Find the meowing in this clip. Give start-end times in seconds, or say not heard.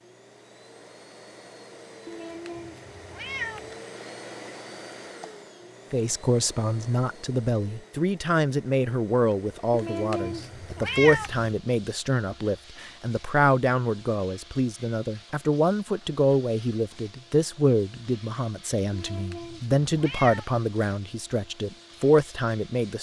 2.0-3.8, 9.7-11.5, 18.9-20.4.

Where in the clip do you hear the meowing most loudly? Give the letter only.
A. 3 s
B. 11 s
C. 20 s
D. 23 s
B.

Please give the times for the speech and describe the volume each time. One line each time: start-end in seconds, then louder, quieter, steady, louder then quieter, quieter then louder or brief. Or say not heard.
5.9-22.9 steady.